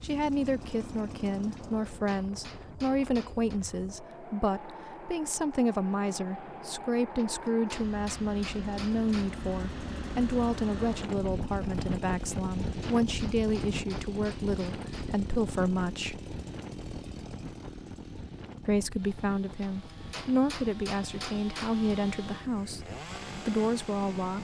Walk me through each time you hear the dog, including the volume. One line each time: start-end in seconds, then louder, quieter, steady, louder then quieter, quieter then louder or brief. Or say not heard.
not heard.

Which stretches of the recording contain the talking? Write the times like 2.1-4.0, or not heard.
0.0-16.2, 18.6-24.3.